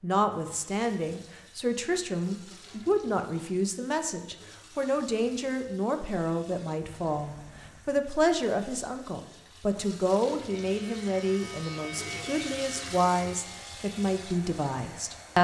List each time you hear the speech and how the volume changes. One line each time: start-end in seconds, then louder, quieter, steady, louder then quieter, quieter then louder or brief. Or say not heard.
0.0-15.3 steady.